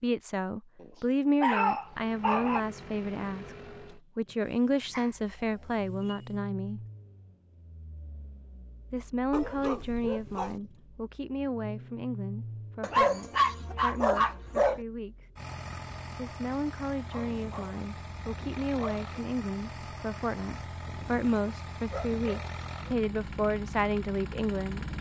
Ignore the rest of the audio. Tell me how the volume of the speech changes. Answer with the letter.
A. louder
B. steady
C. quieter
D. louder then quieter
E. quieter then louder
E.